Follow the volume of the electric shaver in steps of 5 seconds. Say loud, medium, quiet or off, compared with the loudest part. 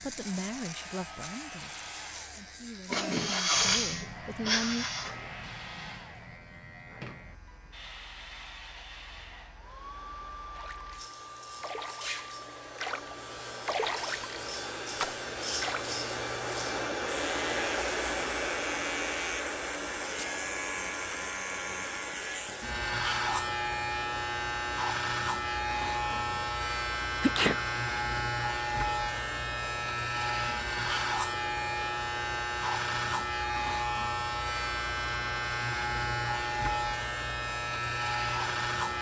quiet, quiet, quiet, medium, loud, loud, loud, loud.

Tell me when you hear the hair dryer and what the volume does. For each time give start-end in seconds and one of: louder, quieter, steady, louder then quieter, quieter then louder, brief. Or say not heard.
0.1-38.9 louder then quieter.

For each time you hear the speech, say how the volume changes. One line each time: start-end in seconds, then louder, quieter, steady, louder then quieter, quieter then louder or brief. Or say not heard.
0.0-4.8 quieter then louder.